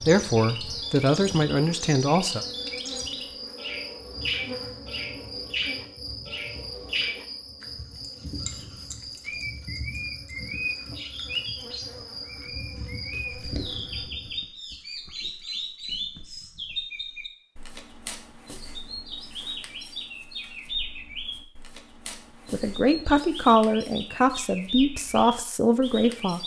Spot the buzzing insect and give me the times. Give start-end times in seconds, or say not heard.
0.0-14.5.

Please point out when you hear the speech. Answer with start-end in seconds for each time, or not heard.
0.1-2.4, 22.5-26.4.